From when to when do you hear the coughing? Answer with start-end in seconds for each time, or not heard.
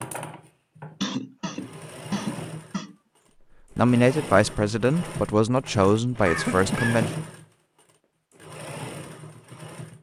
1.0-3.0, 6.2-7.0.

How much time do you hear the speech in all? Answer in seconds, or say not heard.
3 s.